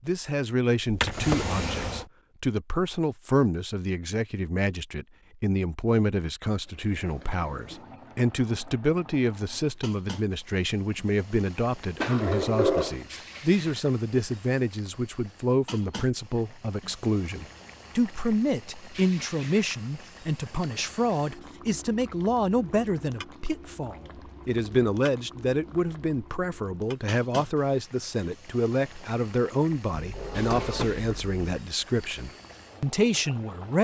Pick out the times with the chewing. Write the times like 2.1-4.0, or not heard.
not heard.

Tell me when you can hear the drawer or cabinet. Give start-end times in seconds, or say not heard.
0.8-2.0, 12.0-13.0, 29.9-31.4.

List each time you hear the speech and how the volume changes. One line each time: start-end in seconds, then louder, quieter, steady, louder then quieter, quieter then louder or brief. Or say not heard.
0.0-33.7 steady.